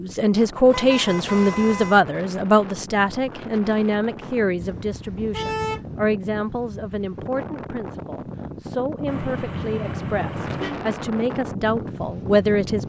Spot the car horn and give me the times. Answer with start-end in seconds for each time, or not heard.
0.7-2.0, 4.6-5.8, 9.1-10.8.